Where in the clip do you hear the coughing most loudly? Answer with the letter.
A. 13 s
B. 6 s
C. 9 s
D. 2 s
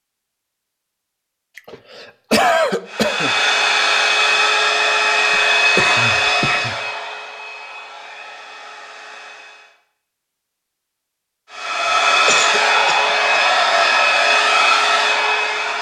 D.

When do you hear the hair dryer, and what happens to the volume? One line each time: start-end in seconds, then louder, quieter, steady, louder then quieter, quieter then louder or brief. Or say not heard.
2.9-9.8 quieter
11.5-15.7 steady.